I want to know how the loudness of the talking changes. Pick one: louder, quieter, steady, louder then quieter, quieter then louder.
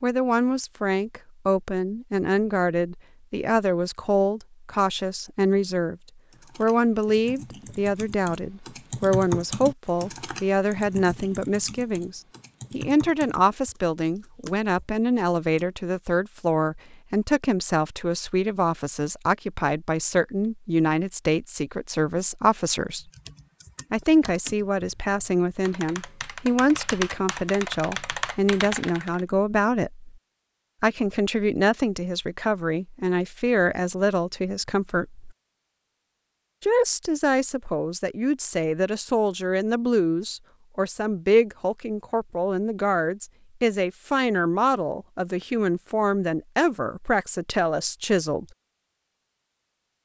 steady.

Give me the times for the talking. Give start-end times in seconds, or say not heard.
0.0-6.0, 6.5-23.1, 23.9-30.1, 30.8-35.2, 36.6-48.5.